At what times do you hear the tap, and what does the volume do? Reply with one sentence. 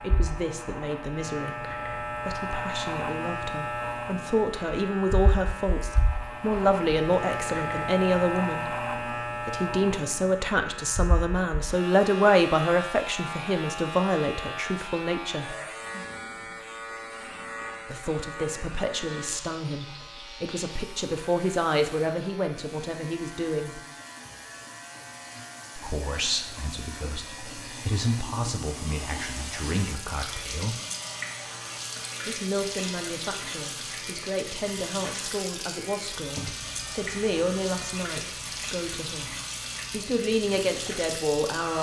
The tap can be heard from 19.1 to 41.7 s, getting louder.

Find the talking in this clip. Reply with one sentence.
You can hear the talking from 0.0 to 1.6 s, from 2.2 to 8.7 s, from 9.4 to 15.6 s, from 17.9 to 23.8 s, from 25.8 to 30.8 s and from 32.2 to 41.7 s.